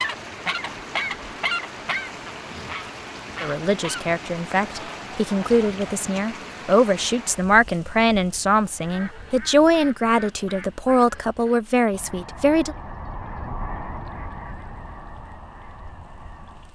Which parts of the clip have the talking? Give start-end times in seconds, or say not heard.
3.4-12.8.